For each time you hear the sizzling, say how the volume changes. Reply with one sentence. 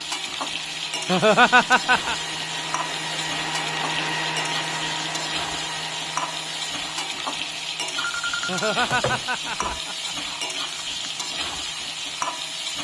The sizzling can be heard from 0.0 to 12.8 s, at a steady volume.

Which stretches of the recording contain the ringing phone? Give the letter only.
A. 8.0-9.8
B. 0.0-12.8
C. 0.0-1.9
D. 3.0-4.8
A.